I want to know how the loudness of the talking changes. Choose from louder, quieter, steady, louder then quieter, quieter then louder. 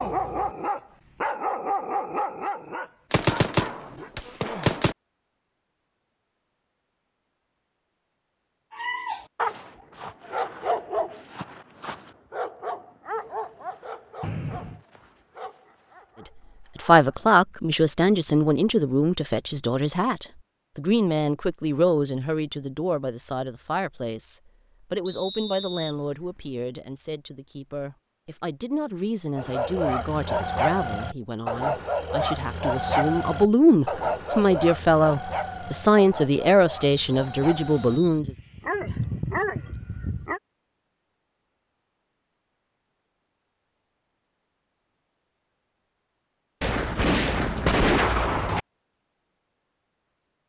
quieter then louder.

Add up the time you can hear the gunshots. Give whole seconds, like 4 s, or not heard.
4 s.